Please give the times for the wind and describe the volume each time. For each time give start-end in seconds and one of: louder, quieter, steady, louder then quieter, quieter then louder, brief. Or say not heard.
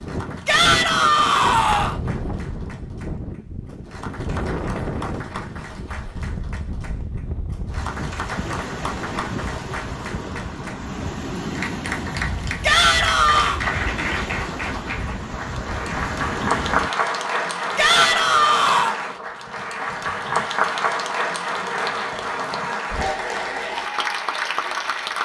0.0-16.9 steady.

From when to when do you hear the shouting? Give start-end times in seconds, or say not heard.
0.5-1.9, 12.6-13.6, 17.8-18.9.